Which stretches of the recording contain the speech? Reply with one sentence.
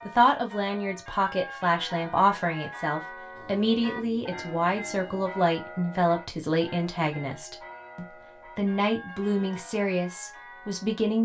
The speech can be heard from 0.1 to 11.2 s.